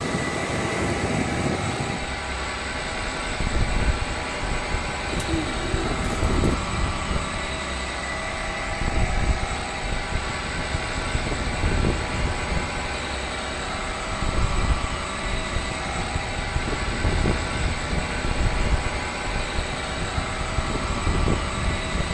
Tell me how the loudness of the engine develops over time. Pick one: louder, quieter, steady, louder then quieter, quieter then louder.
steady.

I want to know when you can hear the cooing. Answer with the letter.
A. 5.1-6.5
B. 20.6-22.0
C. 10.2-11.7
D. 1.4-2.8
A.